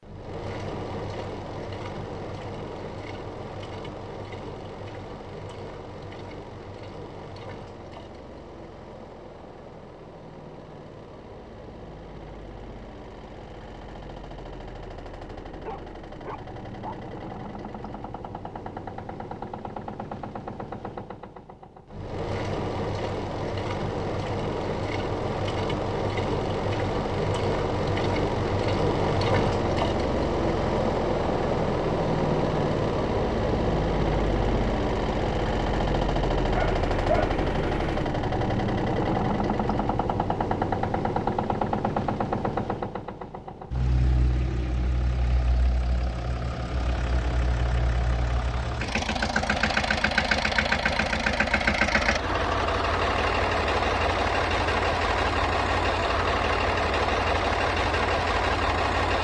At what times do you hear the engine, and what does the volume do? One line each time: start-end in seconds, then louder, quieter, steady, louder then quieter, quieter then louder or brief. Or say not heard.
0.0-59.2 louder.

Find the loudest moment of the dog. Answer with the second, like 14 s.
37 s.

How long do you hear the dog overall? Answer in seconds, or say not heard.
3 s.